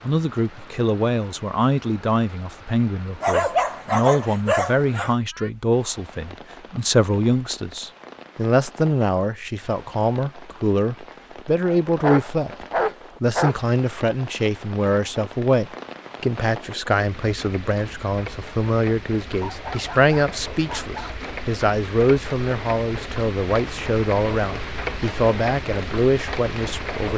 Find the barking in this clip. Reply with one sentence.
You can hear the barking from 3.2 to 5.2 s, from 11.6 to 13.6 s and from 19.2 to 21.1 s.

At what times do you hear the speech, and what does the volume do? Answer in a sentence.
The speech can be heard from 0.1 to 27.1 s, at a steady volume.